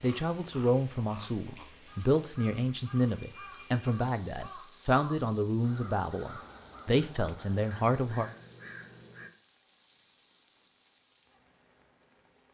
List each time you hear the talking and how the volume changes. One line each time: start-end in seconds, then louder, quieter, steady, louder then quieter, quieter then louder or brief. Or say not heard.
0.0-8.3 steady.